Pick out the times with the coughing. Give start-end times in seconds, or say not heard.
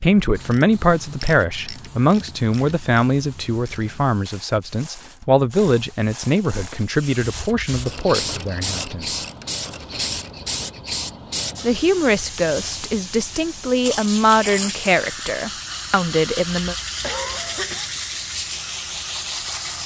17.0-17.9.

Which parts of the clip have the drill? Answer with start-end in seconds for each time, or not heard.
not heard.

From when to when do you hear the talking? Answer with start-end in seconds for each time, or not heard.
0.0-9.2, 11.6-16.8.